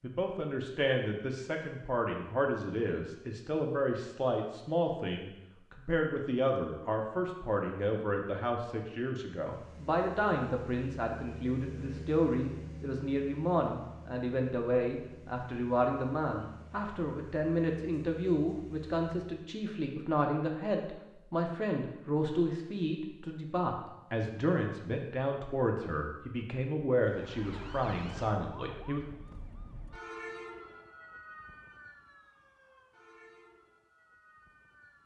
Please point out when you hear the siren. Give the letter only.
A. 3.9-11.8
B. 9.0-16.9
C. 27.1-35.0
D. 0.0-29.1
C.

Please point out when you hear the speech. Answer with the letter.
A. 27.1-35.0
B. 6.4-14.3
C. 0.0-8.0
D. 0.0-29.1
D.